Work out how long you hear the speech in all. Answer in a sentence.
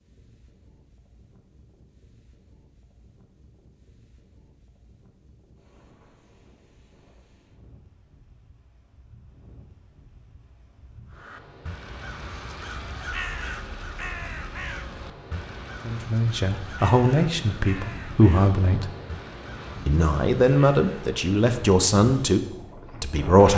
You can hear the speech for 6 seconds altogether.